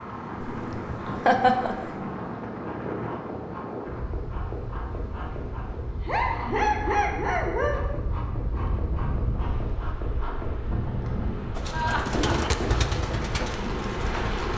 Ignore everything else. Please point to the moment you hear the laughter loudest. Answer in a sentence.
The volume of the laughter peaks at 1 second.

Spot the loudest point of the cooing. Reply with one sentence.
The volume of the cooing peaks at 12 seconds.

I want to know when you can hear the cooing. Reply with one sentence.
The cooing can be heard from 11.6 to 14.5 s.